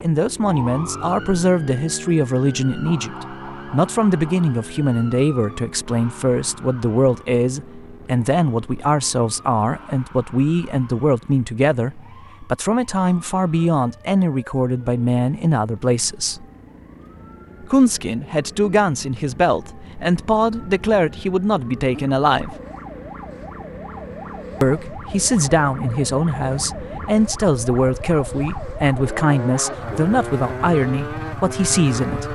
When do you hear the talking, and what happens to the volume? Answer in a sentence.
The talking can be heard from 0.0 to 16.4 s, at a steady volume; from 17.6 to 22.6 s, at a steady volume; and from 24.6 to 32.3 s, at a steady volume.